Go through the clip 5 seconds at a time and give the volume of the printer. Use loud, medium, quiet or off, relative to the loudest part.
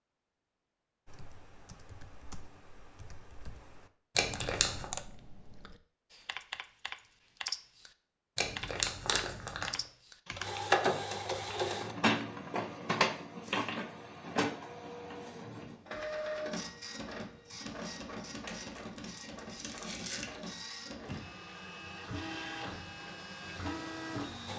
off, off, loud, medium, medium.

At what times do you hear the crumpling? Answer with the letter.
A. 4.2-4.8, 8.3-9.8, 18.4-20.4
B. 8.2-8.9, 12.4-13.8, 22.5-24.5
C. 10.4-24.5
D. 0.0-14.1
A.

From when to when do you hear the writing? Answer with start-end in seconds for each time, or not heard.
not heard.